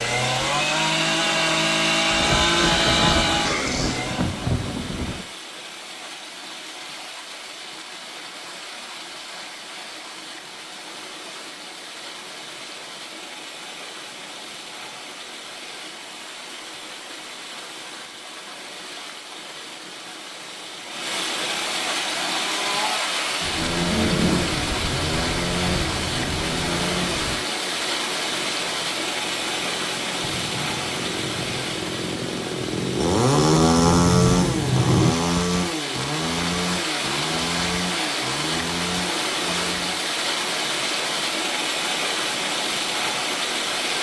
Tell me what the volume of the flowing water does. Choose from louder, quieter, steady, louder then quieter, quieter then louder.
louder.